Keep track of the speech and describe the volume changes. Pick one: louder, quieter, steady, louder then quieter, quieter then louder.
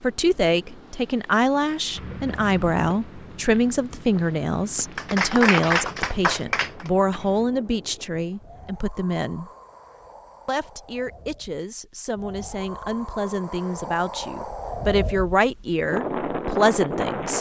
quieter then louder.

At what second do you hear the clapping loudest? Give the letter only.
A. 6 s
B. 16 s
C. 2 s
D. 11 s
A.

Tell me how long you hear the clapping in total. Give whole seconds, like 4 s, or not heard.
2 s.